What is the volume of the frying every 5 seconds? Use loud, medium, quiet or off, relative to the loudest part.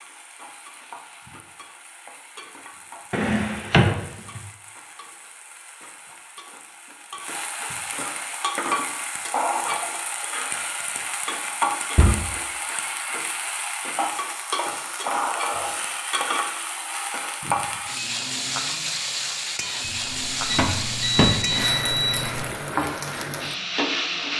quiet, loud, loud, loud, loud.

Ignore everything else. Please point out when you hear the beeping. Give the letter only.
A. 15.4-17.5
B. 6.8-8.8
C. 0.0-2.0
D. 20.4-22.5
D.